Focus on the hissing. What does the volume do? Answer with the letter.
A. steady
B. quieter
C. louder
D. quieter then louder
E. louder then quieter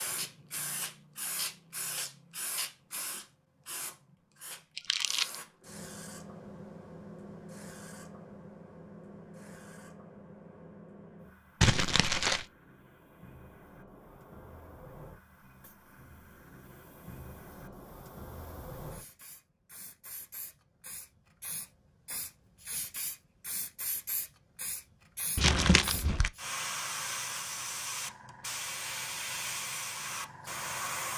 D.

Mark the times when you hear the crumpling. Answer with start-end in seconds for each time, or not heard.
4.8-5.3, 11.6-12.4, 25.4-26.3.